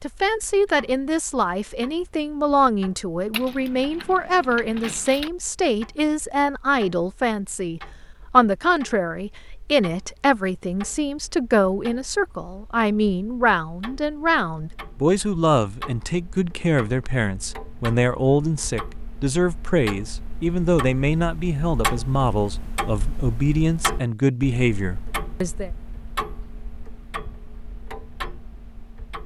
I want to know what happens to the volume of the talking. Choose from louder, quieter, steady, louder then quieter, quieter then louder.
steady.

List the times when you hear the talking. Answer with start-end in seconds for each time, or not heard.
0.0-25.7.